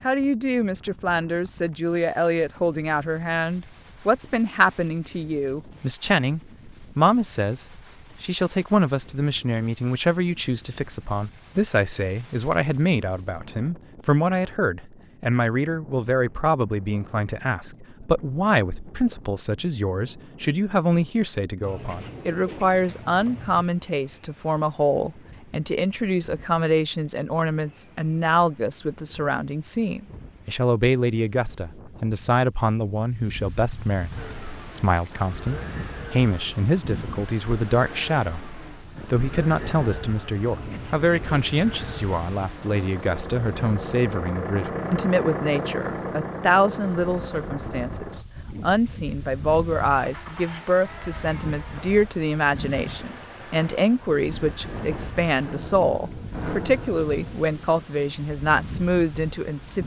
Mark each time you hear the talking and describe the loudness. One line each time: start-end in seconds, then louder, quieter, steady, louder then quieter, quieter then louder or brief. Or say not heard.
0.0-59.8 steady.